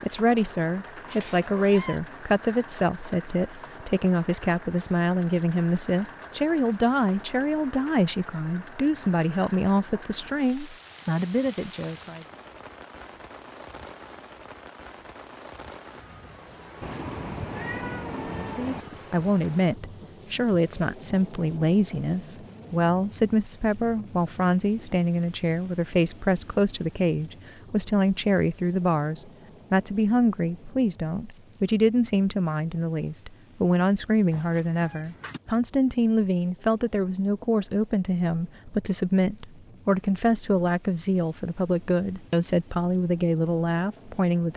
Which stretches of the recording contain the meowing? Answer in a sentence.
The meowing can be heard from 1.1 to 2.0 s, from 16.8 to 18.9 s and from 34.3 to 35.4 s.